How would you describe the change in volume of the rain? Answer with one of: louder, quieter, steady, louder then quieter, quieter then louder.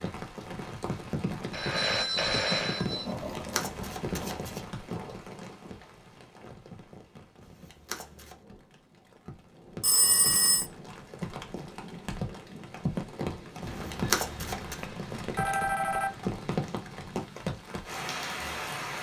quieter then louder.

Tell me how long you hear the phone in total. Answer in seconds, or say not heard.
5 s.